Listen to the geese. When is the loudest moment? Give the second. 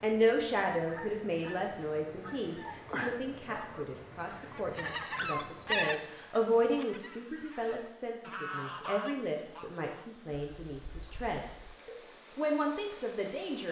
6 s.